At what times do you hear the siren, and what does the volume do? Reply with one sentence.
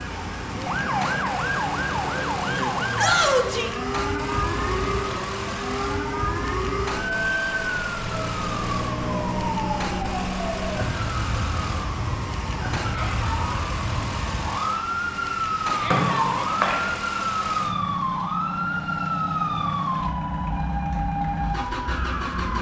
The siren can be heard from 0.0 to 22.5 s, at a steady volume.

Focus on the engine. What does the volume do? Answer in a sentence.
The volume of the engine stays about the same.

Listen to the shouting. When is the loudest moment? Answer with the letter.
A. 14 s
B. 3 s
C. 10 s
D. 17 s
B.